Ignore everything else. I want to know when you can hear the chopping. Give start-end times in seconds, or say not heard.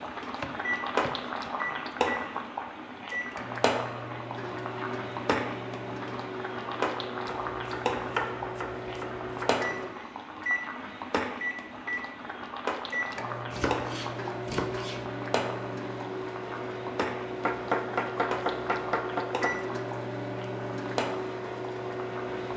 0.4-1.8, 7.2-9.6, 13.5-15.1, 17.4-19.6.